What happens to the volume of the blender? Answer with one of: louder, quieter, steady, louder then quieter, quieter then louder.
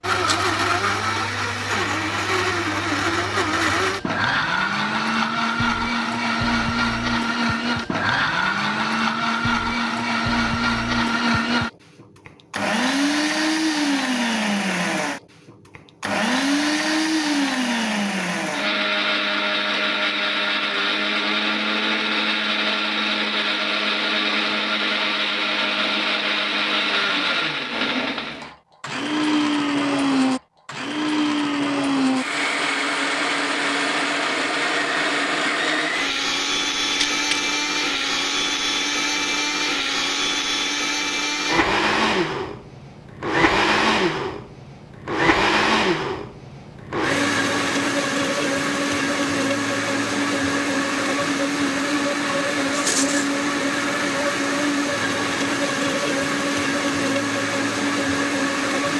steady.